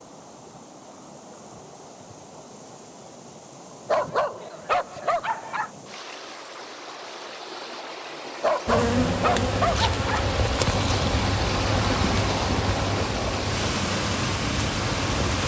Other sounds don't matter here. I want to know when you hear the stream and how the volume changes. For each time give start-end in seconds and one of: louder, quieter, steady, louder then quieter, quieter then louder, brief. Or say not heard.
0.0-15.4 louder.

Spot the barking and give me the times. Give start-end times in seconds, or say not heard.
3.9-5.7, 8.4-10.3.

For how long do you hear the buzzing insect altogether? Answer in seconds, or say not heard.
7 s.